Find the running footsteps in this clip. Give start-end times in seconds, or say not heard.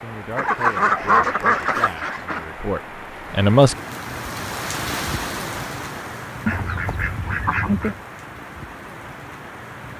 not heard.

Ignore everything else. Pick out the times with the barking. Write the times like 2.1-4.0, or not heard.
not heard.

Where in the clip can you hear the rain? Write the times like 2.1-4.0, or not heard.
0.0-9.9.